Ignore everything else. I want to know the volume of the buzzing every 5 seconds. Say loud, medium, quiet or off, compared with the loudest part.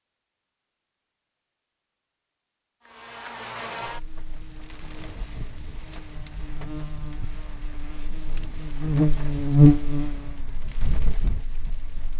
quiet, loud, quiet.